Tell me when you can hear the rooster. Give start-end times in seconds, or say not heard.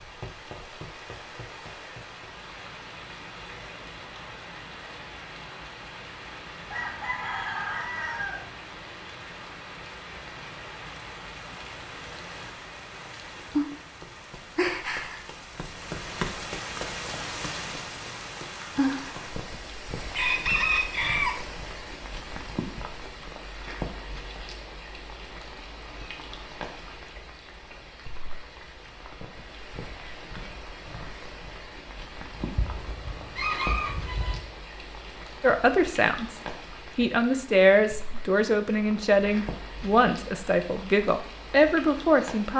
6.7-8.5, 20.1-21.4, 32.4-34.4.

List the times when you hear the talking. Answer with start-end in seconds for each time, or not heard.
35.4-42.5.